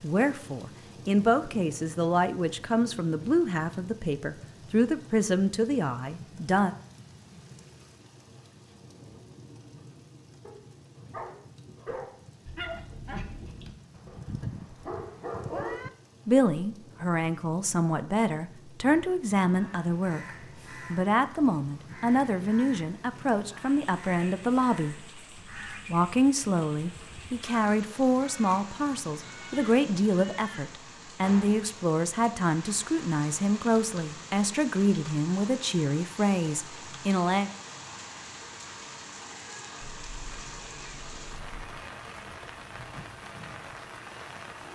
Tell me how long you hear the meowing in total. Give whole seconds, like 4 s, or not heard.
4 s.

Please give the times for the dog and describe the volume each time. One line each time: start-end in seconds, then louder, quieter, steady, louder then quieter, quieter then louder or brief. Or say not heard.
10.4-15.8 quieter then louder.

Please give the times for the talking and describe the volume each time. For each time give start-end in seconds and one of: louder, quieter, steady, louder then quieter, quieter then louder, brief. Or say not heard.
0.0-6.8 steady
16.2-37.5 steady.